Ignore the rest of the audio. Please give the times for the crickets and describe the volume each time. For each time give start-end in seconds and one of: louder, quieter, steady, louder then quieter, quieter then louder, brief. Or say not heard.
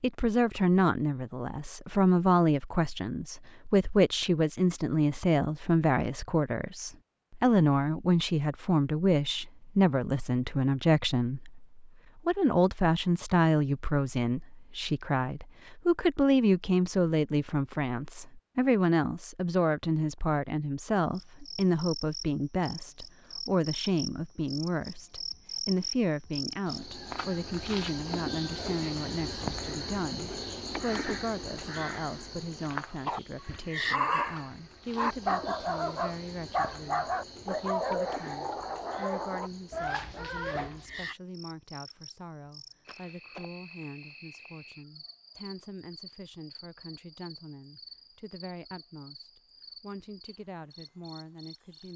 21.1-51.9 quieter.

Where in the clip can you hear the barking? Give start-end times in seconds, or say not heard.
32.7-41.1.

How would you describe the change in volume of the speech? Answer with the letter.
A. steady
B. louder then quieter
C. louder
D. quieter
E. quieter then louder
D.